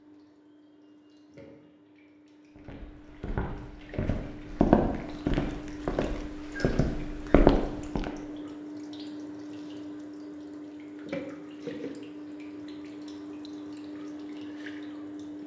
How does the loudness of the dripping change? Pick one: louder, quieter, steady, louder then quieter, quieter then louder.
louder.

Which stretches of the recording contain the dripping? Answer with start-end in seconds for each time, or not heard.
0.0-15.4.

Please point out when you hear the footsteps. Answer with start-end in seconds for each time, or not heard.
2.5-8.1.